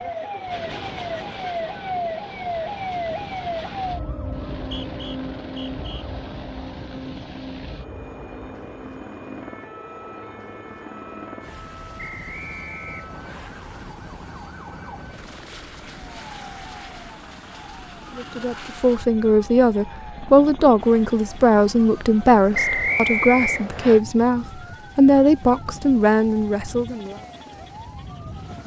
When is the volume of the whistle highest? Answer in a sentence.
The volume of the whistle peaks at 23 seconds.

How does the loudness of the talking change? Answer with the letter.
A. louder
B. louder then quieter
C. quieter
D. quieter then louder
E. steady
E.